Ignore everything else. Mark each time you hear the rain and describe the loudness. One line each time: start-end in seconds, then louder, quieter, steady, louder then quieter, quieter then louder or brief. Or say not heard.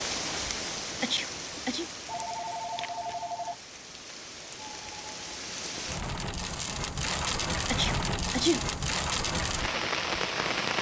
0.0-10.7 quieter then louder.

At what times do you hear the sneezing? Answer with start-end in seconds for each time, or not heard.
1.0-1.9, 7.7-8.7.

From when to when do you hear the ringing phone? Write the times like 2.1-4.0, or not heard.
2.0-3.6.